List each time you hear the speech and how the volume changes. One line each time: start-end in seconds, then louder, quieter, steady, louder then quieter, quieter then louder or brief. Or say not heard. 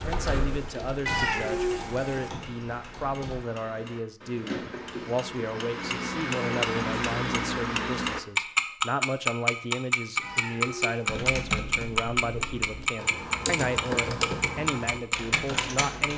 0.0-16.1 steady.